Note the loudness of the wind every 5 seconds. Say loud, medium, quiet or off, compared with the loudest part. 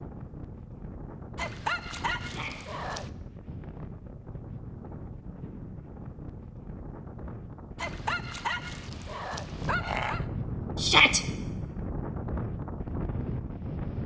medium, medium, loud.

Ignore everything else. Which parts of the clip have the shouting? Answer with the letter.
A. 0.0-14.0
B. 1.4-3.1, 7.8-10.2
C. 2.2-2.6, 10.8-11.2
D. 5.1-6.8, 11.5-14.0
C.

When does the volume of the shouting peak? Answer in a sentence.
The volume of the shouting peaks at 11 seconds.